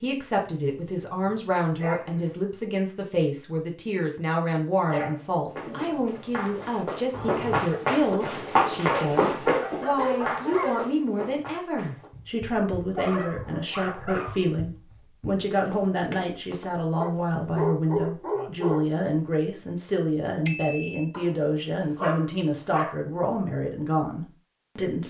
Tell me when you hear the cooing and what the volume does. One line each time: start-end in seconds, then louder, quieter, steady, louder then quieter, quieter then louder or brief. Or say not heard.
not heard.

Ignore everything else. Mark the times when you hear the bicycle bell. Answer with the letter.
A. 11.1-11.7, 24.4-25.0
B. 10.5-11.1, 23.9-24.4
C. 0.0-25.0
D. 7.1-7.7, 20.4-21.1
D.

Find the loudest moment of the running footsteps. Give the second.
9 s.